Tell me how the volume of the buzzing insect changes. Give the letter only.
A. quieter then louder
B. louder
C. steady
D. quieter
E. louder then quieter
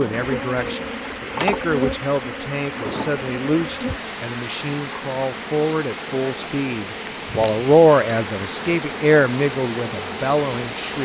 C.